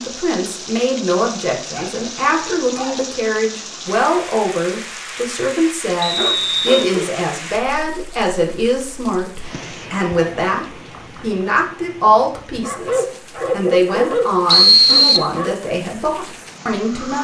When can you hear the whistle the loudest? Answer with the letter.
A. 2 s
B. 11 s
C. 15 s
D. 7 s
C.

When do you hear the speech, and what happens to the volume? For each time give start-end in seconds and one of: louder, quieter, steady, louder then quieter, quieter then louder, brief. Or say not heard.
0.0-17.2 steady.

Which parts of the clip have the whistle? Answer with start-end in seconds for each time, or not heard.
6.0-6.8, 14.4-15.2.